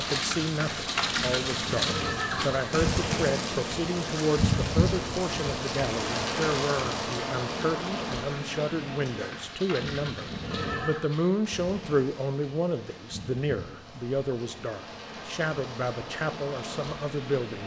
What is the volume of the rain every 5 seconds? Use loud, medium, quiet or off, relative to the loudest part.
loud, loud, quiet, medium.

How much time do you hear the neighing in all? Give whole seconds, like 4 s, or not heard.
3 s.